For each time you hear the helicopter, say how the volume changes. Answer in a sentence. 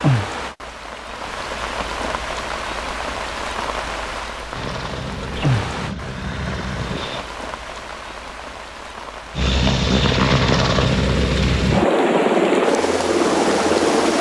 The helicopter can be heard briefly from 4.5 to 7.2 s; and from 9.3 to 14.1 s, at a steady volume.